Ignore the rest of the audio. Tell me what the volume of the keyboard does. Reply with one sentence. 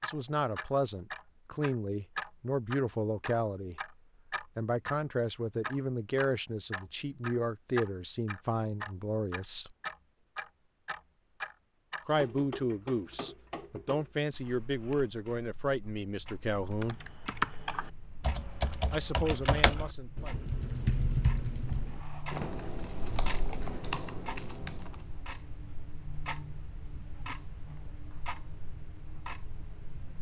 The loudness of the keyboard goes down.